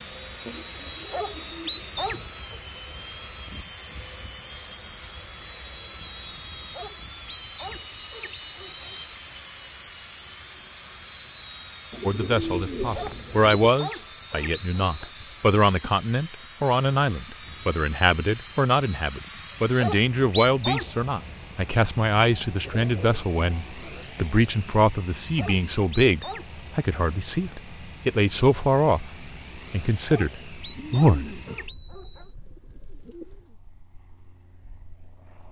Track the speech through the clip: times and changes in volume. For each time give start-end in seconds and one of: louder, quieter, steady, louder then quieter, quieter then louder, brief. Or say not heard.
12.1-31.4 steady.